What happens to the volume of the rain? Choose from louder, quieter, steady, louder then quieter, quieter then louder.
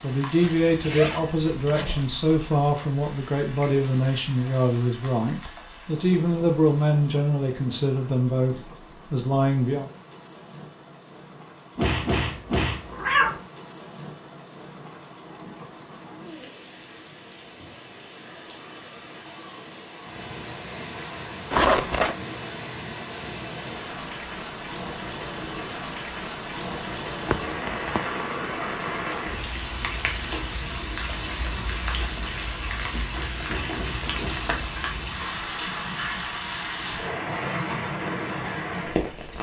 louder.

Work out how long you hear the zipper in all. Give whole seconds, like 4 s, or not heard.
3 s.